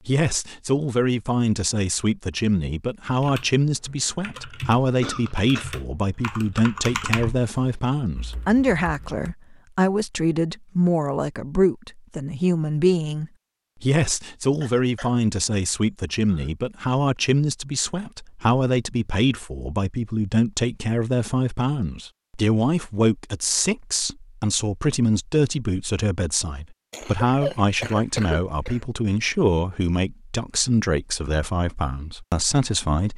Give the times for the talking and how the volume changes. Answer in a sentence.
You can hear the talking from 0.1 to 33.1 s, at a steady volume.